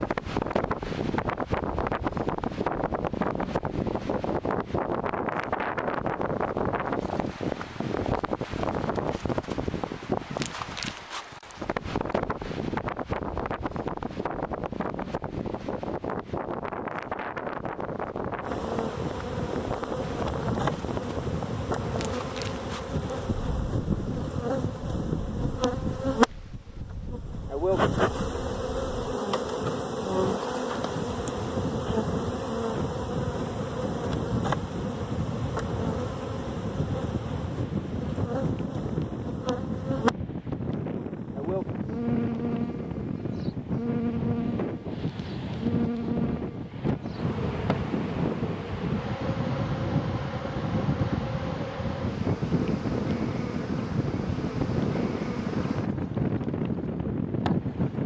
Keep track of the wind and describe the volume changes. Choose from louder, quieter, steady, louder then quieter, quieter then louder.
quieter then louder.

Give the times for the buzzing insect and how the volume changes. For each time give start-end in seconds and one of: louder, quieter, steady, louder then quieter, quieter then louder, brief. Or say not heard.
18.4-58.0 quieter.